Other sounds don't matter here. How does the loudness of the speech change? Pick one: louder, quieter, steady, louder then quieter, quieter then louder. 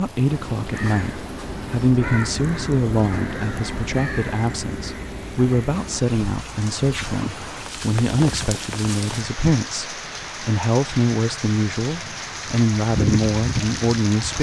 steady.